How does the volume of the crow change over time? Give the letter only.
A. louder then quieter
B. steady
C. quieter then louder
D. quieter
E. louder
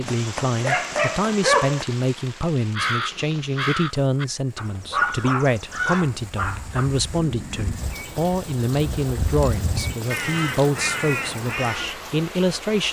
C.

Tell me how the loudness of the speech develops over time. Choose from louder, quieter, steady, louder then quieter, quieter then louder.
steady.